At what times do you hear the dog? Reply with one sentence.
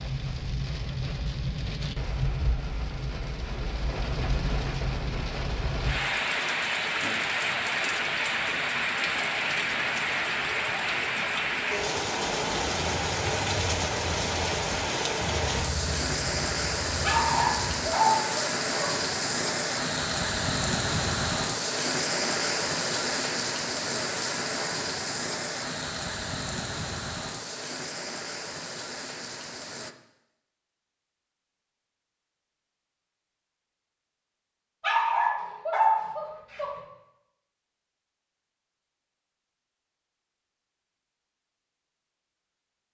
The dog can be heard from 17.0 to 18.9 s and from 34.8 to 36.7 s.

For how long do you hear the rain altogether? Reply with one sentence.
You can hear the rain for 30 seconds altogether.